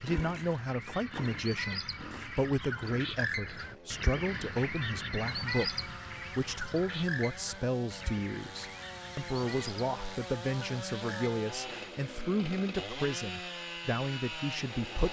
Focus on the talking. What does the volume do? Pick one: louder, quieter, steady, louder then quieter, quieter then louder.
steady.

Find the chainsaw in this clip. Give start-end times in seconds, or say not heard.
0.0-15.0.